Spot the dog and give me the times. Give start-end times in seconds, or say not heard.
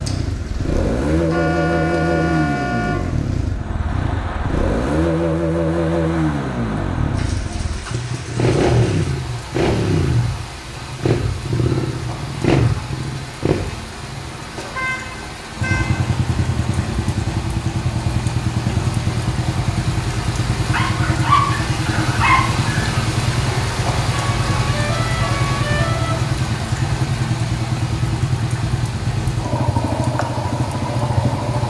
20.6-22.8.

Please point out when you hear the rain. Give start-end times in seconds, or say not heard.
0.0-31.6.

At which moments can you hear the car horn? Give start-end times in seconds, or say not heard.
1.3-3.0, 14.4-16.1, 24.1-26.1.